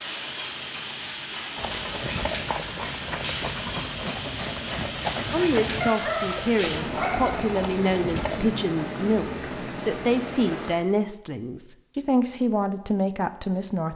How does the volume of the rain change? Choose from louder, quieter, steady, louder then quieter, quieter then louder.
steady.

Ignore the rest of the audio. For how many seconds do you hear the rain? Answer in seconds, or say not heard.
11 s.